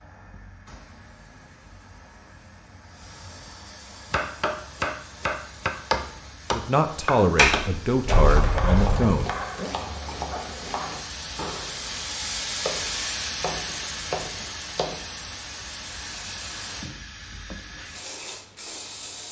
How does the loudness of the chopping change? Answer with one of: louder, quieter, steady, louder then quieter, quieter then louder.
quieter.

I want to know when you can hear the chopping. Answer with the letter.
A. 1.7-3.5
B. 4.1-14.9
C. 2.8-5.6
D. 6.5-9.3
B.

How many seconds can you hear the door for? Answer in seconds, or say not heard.
2 s.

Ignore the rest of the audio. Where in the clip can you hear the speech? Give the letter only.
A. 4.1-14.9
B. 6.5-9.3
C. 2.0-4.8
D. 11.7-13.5
B.